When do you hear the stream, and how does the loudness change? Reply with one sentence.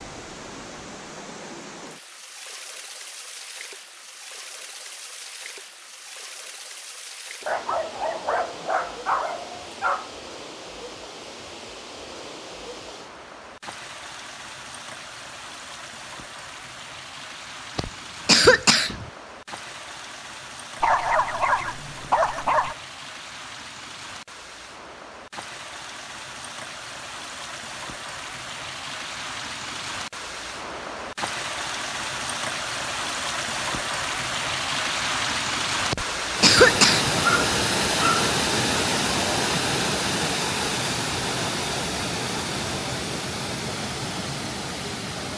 The stream can be heard from 0.0 to 45.3 s, getting louder.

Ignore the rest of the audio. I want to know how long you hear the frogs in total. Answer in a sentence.
You can't hear the frogs here.